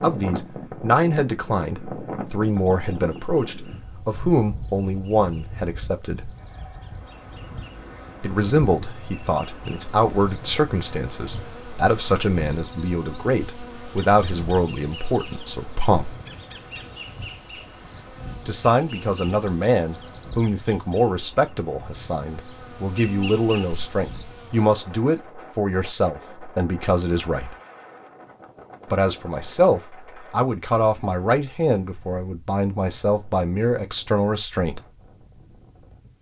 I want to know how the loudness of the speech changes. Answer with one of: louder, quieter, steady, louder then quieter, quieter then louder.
steady.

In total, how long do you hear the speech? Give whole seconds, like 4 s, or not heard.
29 s.